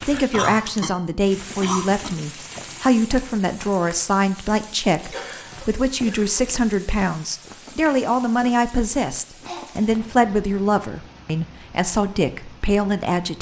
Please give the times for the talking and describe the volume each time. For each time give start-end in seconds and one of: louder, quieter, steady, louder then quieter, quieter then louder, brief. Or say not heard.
0.0-13.3 steady.